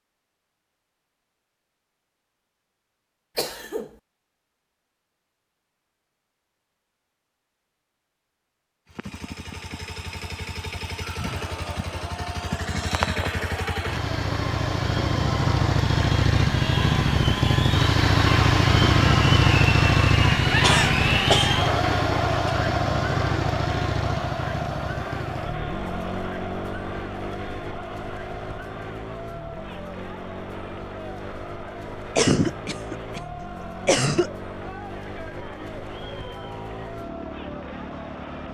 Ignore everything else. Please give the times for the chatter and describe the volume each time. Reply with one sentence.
The chatter can be heard from 11.2 to 38.5 s, getting louder then quieter.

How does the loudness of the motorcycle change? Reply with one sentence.
The loudness of the motorcycle goes up, then down.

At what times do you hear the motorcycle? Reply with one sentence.
You can hear the motorcycle from 8.8 to 38.5 s.